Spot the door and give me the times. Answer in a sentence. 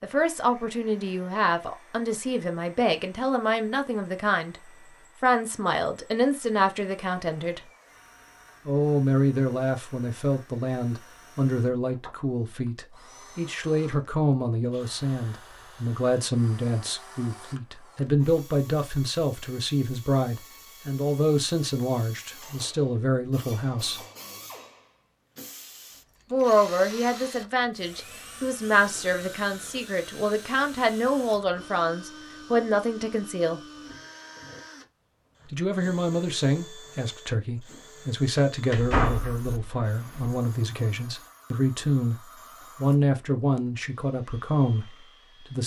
The door can be heard from 38.7 to 40.3 s.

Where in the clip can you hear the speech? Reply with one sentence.
You can hear the speech from 0.0 to 7.6 s, from 8.7 to 24.0 s, from 26.3 to 33.6 s and from 35.5 to 45.6 s.